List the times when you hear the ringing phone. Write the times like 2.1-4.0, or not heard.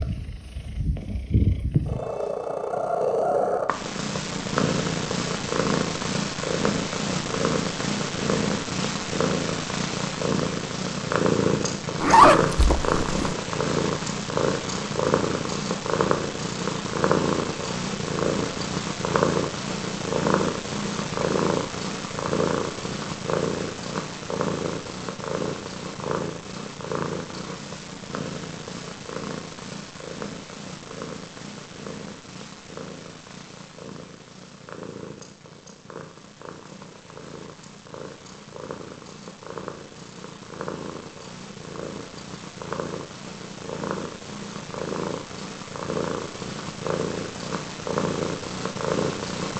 not heard.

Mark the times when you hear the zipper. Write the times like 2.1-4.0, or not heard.
12.0-13.3.